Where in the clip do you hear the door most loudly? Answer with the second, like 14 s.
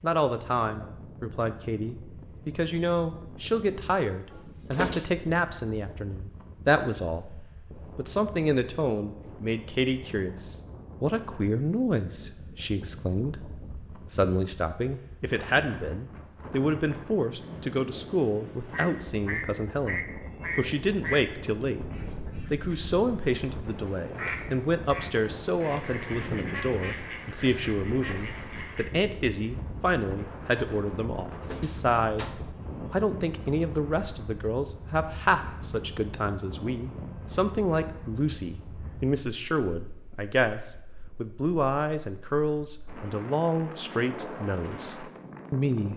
5 s.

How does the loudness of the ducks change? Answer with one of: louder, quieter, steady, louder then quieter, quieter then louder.
quieter.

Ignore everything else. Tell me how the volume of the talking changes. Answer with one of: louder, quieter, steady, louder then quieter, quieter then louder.
steady.